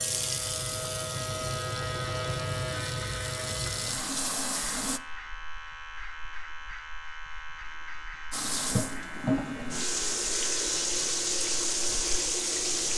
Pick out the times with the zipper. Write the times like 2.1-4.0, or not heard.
not heard.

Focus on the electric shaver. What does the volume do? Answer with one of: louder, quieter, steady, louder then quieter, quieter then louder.
quieter.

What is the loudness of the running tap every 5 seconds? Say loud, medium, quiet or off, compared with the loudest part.
medium, loud, loud.